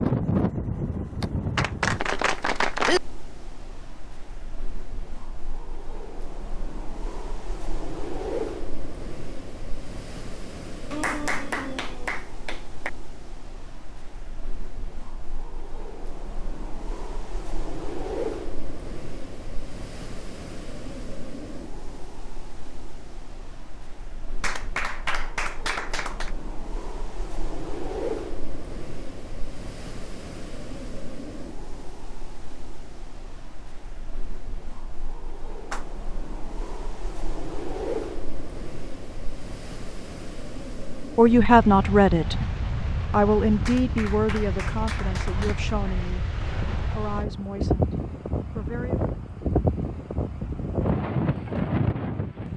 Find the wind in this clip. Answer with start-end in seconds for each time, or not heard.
0.0-52.5.